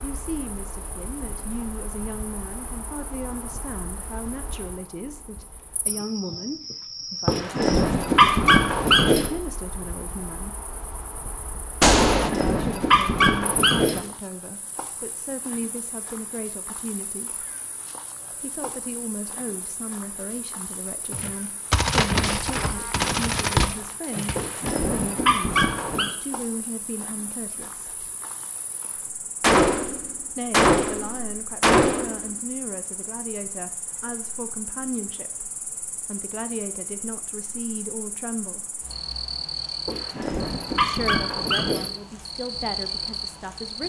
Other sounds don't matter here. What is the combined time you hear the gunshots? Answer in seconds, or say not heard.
7 s.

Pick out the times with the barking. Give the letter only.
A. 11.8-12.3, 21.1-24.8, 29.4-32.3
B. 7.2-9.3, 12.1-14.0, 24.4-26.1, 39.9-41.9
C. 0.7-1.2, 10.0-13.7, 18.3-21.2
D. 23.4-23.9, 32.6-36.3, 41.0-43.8
B.